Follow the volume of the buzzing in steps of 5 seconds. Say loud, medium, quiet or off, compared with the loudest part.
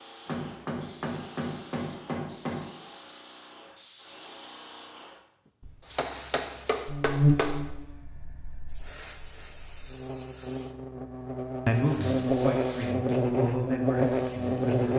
off, loud, loud.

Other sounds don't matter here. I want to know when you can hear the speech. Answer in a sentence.
You can hear the speech from 11.7 to 14.8 s.